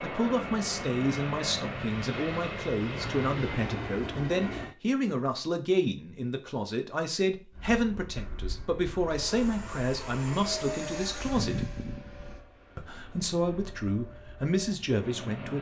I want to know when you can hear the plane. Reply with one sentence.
The plane can be heard from 0.0 to 4.8 s and from 7.5 to 15.5 s.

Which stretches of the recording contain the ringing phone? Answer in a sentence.
The ringing phone can't be heard in this clip.